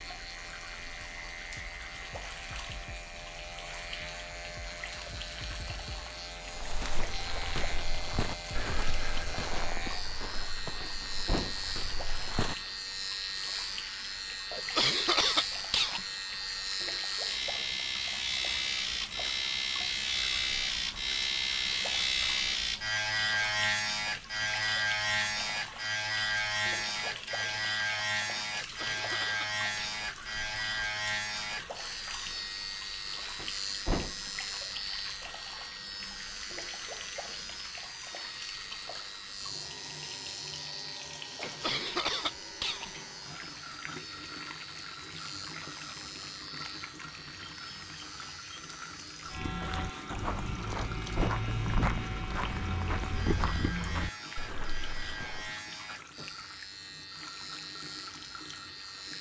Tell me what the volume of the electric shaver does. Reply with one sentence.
The loudness of the electric shaver goes up, then down.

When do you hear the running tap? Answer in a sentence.
The running tap can be heard from 0.0 to 59.1 s.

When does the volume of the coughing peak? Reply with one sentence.
The volume of the coughing peaks at 15 seconds.